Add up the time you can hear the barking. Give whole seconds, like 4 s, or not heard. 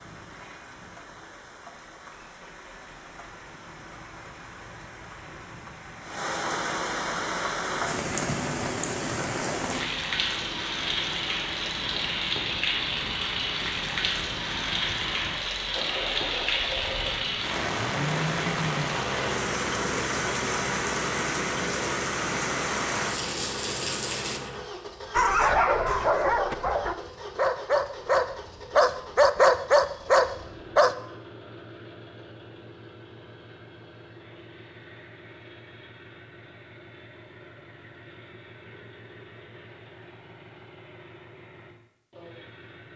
6 s.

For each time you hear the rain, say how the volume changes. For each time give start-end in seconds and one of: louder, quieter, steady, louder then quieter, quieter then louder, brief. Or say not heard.
0.0-24.4 louder.